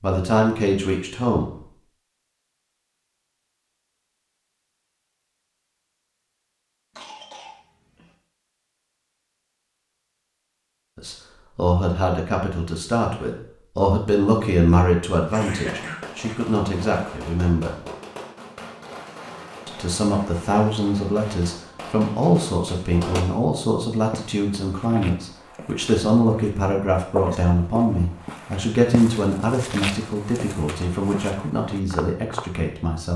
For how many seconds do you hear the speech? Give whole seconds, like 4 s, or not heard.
22 s.